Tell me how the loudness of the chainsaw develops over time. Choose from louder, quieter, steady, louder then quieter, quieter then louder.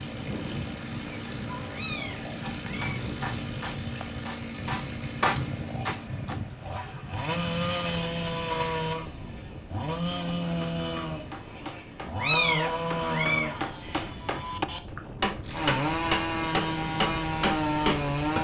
louder.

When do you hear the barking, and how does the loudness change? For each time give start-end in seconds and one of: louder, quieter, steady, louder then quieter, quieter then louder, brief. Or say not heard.
not heard.